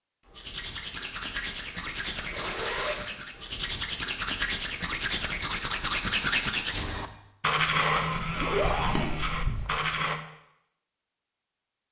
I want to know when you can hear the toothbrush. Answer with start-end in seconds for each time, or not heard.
0.3-10.2.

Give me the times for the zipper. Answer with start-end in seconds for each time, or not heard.
2.3-3.1, 8.1-9.8.